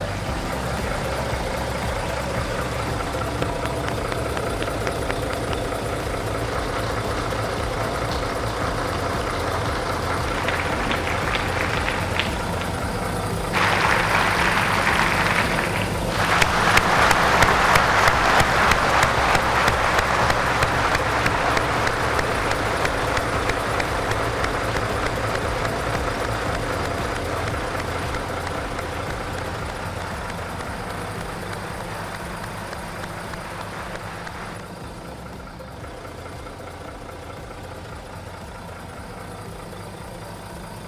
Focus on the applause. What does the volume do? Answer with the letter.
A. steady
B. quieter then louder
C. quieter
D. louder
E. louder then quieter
E.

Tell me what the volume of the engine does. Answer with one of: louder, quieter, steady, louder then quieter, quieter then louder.
quieter.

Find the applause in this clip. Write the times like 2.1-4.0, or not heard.
0.0-34.6.